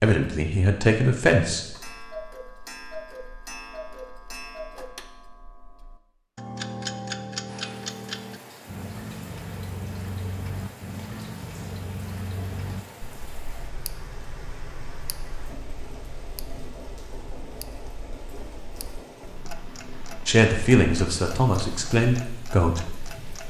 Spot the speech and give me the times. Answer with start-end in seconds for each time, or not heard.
0.0-1.6, 20.2-23.4.